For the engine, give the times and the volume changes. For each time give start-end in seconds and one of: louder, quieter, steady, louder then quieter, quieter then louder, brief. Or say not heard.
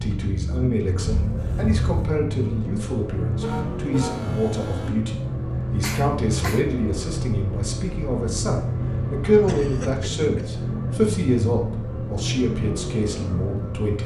0.0-14.0 steady.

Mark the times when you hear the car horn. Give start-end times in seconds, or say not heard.
3.4-4.9.